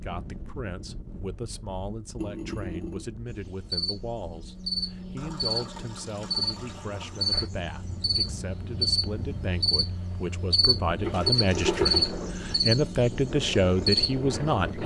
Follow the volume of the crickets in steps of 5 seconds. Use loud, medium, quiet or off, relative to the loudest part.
medium, loud, loud.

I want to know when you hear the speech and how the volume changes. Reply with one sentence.
The speech can be heard from 0.0 to 14.8 s, getting louder.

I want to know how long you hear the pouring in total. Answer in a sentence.
The pouring can be heard for 4 seconds in total.